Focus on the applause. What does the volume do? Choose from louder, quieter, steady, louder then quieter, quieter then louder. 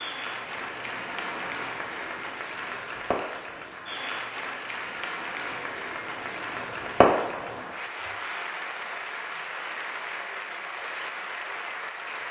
steady.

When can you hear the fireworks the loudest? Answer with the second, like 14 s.
7 s.